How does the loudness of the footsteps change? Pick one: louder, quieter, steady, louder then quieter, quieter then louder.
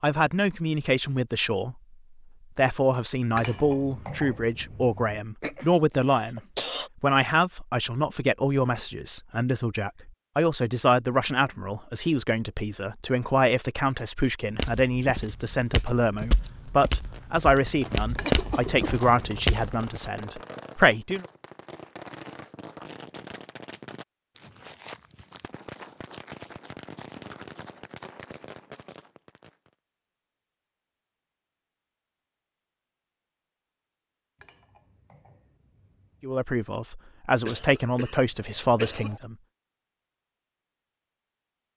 louder.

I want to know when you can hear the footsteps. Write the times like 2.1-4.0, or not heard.
14.6-20.1.